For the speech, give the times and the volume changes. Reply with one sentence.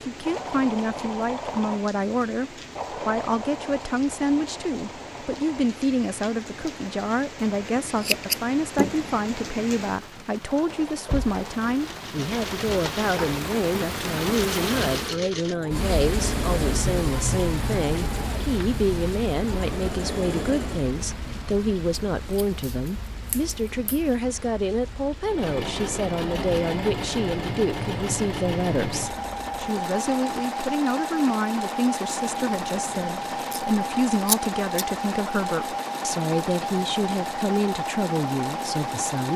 The speech can be heard from 0.1 to 39.3 s, at a steady volume.